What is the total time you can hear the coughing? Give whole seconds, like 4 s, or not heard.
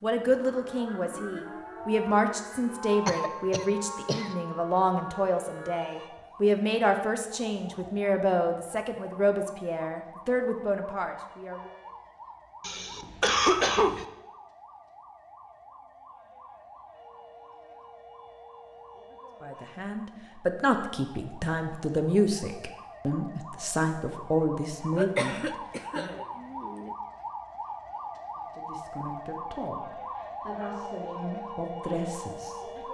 5 s.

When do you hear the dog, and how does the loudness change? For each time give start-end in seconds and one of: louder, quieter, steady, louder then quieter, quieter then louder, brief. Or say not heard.
not heard.